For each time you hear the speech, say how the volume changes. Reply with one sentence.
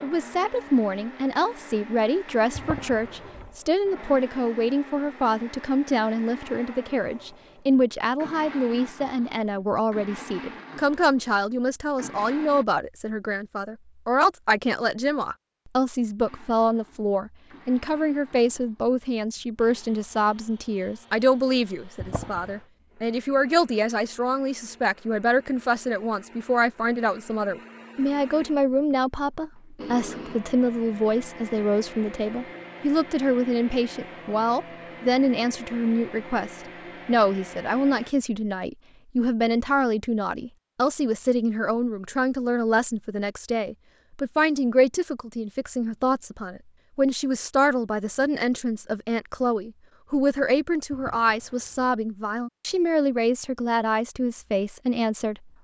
You can hear the speech from 0.0 to 55.5 s, at a steady volume.